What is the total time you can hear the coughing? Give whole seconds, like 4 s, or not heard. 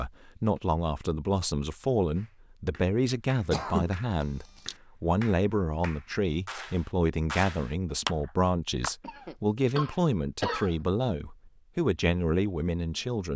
2 s.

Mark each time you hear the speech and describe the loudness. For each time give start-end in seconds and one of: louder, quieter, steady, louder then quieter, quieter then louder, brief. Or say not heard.
0.0-13.3 steady.